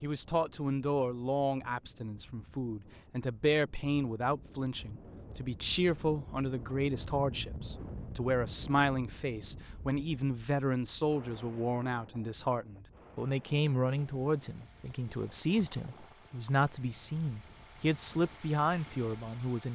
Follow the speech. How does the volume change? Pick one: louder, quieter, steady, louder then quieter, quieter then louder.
steady.